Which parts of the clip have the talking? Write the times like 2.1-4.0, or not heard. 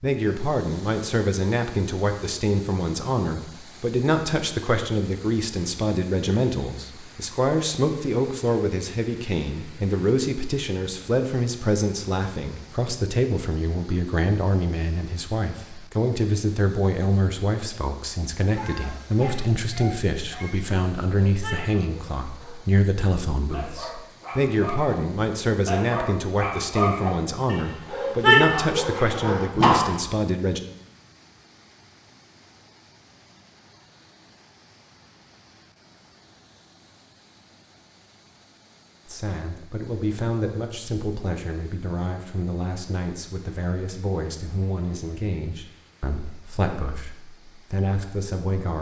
0.0-30.6, 39.0-48.7.